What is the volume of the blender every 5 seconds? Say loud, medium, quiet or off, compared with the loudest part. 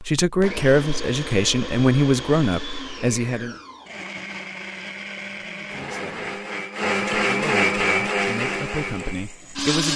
medium, loud.